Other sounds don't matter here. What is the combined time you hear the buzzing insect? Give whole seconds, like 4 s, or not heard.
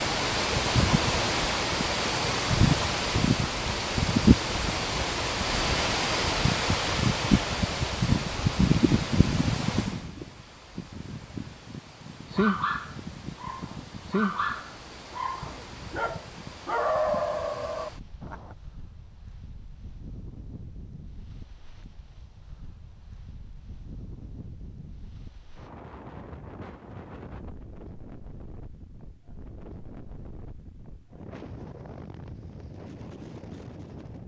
not heard.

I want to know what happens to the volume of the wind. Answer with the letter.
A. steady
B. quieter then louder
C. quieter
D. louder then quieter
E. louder
C.